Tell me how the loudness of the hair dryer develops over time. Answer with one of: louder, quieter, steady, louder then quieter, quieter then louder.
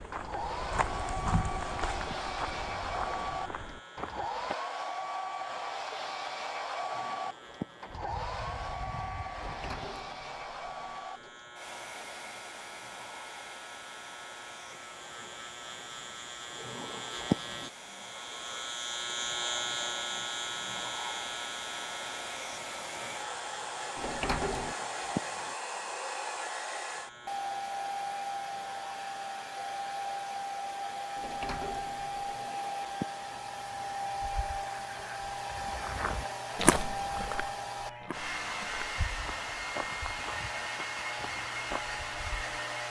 quieter then louder.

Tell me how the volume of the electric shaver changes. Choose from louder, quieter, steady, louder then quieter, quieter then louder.
louder then quieter.